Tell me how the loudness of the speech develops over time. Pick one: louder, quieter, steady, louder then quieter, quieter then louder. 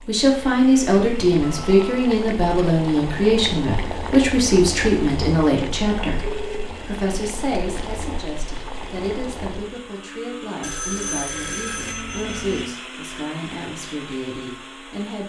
quieter.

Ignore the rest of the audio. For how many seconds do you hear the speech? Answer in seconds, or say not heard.
15 s.